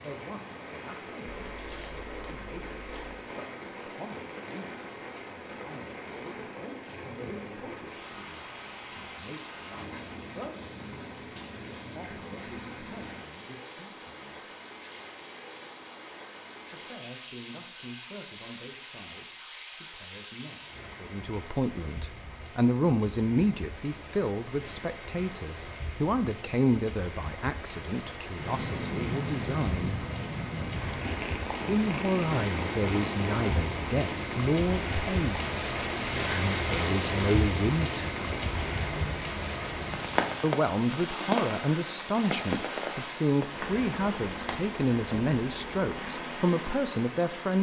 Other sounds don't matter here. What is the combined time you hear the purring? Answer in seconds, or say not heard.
12 s.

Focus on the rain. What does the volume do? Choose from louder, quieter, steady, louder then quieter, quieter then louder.
louder.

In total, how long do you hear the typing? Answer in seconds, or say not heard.
2 s.